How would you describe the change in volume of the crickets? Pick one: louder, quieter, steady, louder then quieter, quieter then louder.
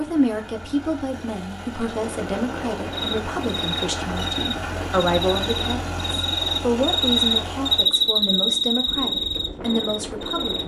louder then quieter.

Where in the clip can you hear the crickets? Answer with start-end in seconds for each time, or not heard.
2.9-10.6.